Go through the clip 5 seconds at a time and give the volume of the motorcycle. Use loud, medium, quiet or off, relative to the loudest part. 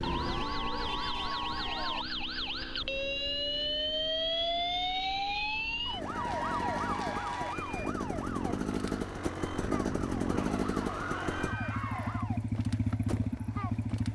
medium, loud, loud.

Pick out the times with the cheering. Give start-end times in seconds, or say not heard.
0.0-2.0, 6.0-7.5, 10.3-12.3.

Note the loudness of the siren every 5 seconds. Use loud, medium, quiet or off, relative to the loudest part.
loud, loud, medium.